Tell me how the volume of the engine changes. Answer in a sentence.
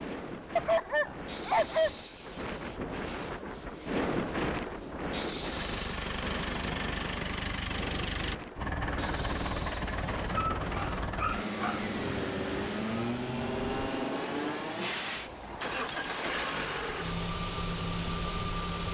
The volume of the engine stays about the same.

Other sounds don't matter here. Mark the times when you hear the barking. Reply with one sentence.
You can hear the barking from 0.6 to 1.9 s and from 10.3 to 11.8 s.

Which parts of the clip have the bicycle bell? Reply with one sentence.
You can't hear the bicycle bell here.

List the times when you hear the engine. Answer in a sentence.
The engine can be heard from 5.3 to 18.8 s.